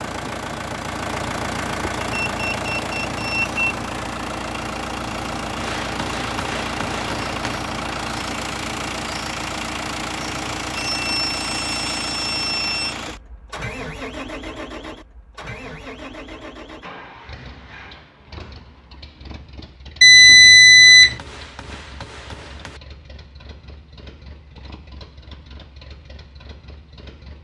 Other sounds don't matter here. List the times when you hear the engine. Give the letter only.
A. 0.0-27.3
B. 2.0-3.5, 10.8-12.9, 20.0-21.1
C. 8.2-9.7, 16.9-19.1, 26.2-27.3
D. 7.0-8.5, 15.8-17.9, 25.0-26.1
A.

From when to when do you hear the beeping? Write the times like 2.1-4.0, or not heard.
2.0-3.5, 10.8-12.9, 20.0-21.1.